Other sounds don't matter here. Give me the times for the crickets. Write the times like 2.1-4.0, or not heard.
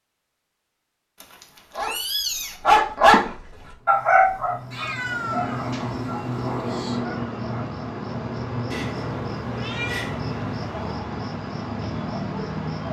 3.7-12.8.